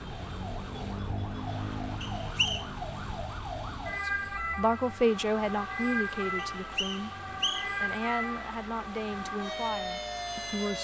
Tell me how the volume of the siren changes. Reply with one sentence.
The volume of the siren stays about the same.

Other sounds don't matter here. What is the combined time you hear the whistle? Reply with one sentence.
The whistle can be heard for 2 seconds in total.